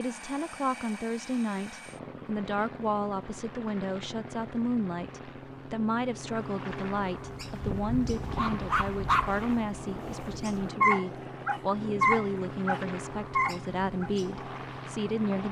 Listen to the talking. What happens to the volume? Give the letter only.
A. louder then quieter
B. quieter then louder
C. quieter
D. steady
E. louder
D.